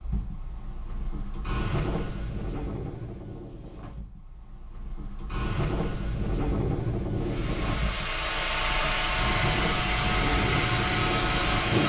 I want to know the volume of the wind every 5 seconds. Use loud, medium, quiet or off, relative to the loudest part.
medium, loud, loud.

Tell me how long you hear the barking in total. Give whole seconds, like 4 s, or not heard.
not heard.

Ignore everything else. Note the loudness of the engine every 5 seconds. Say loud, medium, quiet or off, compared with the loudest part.
off, loud, loud.